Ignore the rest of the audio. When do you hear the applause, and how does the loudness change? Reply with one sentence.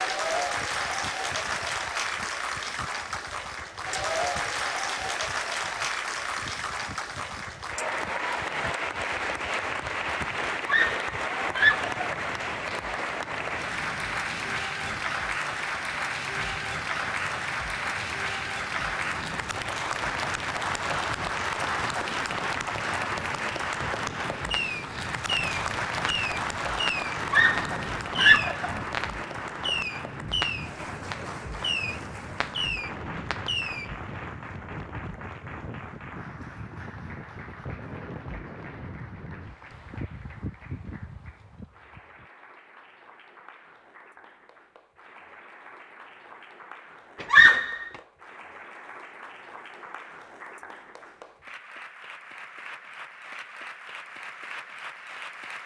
The applause can be heard from 0.0 to 55.6 s, getting quieter.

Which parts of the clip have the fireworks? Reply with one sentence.
You can hear the fireworks from 24.4 to 33.9 s.